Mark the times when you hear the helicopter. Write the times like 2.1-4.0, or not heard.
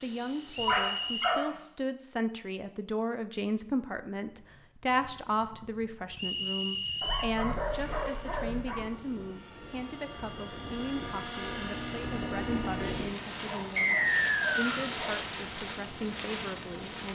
0.0-1.9, 7.3-13.2.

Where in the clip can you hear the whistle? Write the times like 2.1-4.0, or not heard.
0.5-1.4, 6.2-7.3, 13.8-14.8.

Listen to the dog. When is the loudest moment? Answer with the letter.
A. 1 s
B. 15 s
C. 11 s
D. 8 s
A.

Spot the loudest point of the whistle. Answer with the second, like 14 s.
14 s.